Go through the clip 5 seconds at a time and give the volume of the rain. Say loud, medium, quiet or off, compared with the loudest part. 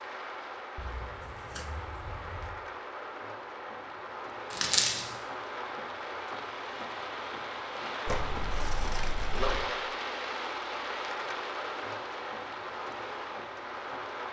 medium, loud, loud.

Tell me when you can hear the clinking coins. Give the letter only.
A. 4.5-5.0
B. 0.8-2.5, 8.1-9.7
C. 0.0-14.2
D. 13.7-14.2
A.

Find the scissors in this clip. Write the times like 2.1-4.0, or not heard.
0.8-2.5, 8.1-9.7.